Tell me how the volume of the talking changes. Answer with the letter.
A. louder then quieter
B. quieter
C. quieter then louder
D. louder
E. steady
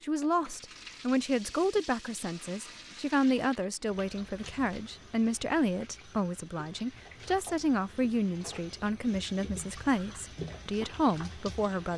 E.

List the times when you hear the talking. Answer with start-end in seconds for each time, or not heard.
0.0-11.9.